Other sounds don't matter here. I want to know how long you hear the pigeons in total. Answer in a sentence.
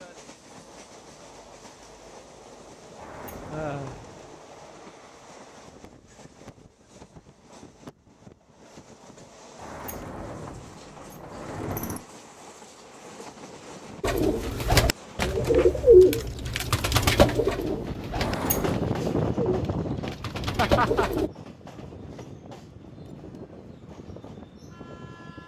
The pigeons can be heard for 7 seconds in total.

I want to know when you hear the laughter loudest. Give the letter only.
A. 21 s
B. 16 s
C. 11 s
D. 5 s
A.